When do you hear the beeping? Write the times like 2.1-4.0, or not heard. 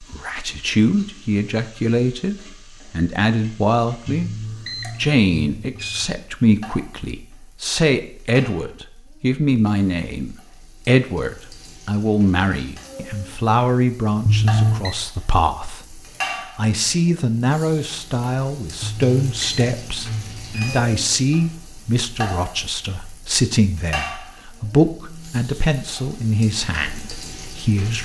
4.2-6.1, 14.2-14.9, 18.8-20.9.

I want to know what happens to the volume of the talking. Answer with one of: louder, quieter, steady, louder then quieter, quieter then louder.
steady.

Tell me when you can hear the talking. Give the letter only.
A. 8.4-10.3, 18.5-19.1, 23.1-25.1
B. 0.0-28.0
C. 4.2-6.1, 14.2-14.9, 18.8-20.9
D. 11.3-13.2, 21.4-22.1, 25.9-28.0
B.